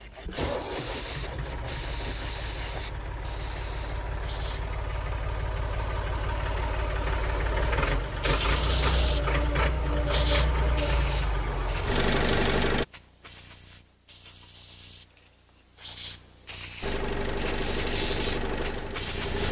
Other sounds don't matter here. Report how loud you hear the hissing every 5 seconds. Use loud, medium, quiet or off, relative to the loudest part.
medium, loud, medium, medium.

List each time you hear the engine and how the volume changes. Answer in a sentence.
You can hear the engine from 0.1 to 12.8 s, getting louder; and briefly from 16.8 to 19.4 s.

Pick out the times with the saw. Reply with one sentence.
The saw can be heard from 0.0 to 2.9 s.